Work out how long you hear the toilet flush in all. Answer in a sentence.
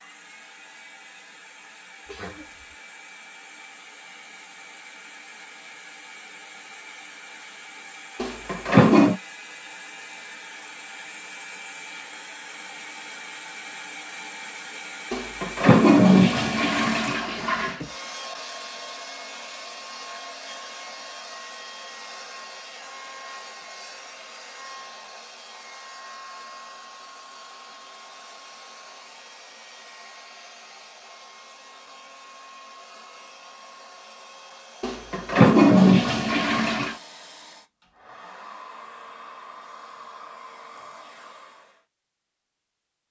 You can hear the toilet flush for 6 seconds altogether.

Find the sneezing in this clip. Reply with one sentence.
You can hear the sneezing from 2.0 to 2.8 s.